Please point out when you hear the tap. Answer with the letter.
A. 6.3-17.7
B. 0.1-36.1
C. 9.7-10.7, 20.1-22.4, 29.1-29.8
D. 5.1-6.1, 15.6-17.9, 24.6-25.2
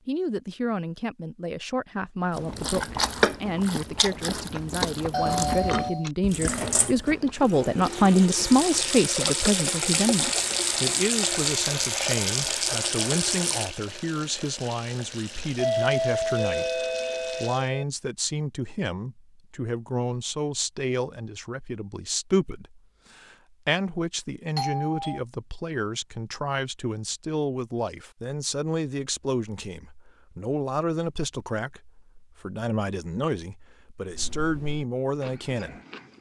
A.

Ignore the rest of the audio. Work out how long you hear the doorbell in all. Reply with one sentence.
You can hear the doorbell for 4 seconds altogether.